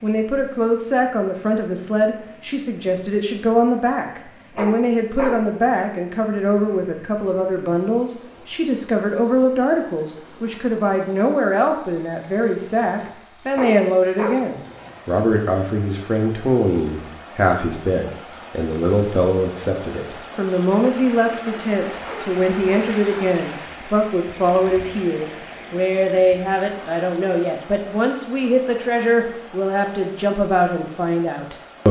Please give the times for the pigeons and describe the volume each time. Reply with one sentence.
You can't hear the pigeons here.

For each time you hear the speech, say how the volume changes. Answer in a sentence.
You can hear the speech from 0.0 to 31.8 s, at a steady volume.